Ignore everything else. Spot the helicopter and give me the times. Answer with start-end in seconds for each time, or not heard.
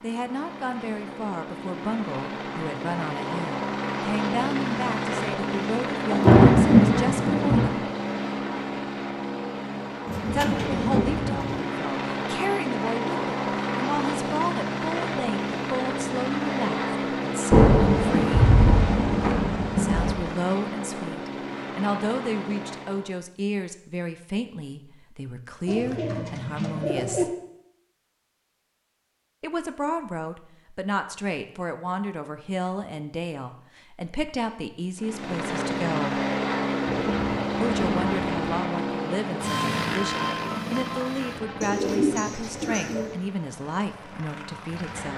0.0-23.1, 35.0-45.1.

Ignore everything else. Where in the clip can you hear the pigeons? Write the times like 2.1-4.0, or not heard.
10.1-11.7, 25.6-27.2, 41.6-43.1.